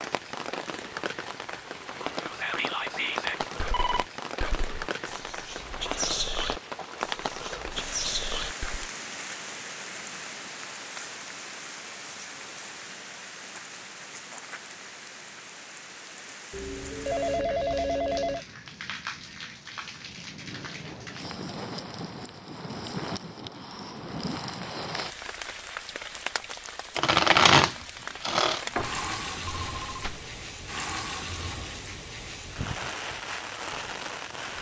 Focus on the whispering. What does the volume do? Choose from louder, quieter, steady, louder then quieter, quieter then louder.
quieter then louder.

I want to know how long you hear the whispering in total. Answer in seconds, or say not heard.
7 s.